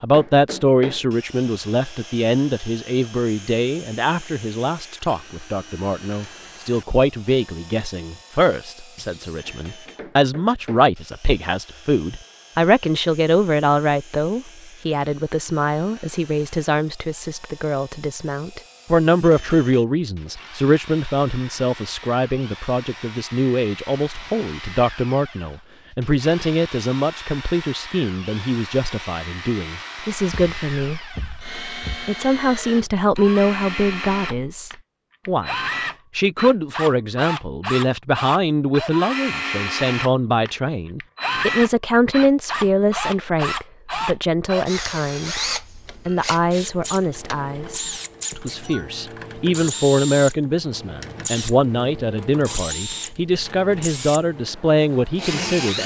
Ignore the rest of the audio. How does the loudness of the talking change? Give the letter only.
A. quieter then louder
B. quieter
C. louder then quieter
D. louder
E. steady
E.